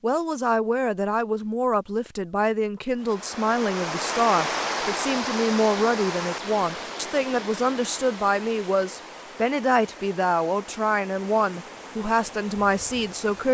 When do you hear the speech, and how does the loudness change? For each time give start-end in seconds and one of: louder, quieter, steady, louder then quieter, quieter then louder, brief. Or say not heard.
0.0-13.4 steady.